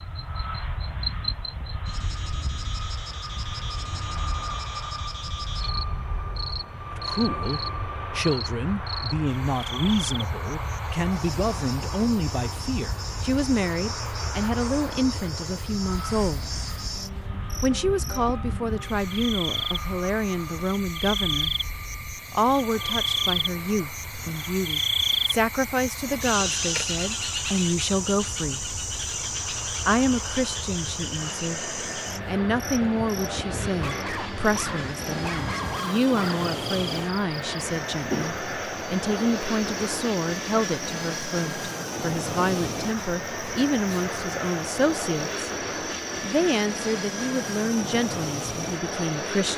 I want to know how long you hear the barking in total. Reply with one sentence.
The barking can be heard for 3 seconds in total.